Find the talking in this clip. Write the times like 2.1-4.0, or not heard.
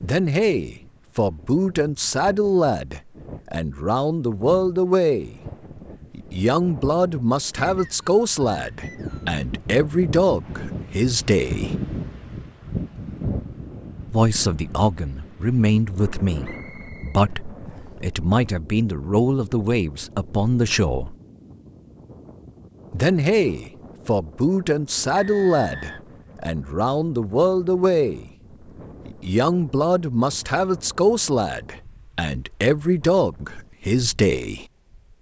0.0-5.4, 6.1-11.8, 14.1-21.1, 22.9-28.3, 29.1-34.6.